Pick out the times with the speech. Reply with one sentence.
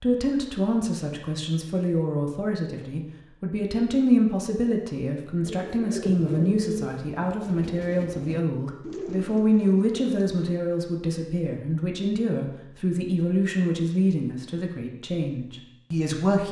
You can hear the speech from 0.0 to 16.4 s.